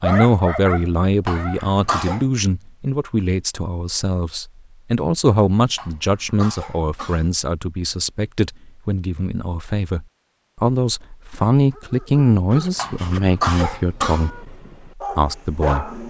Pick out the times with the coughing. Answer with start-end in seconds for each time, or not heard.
1.2-2.2, 5.8-7.3, 12.8-14.3.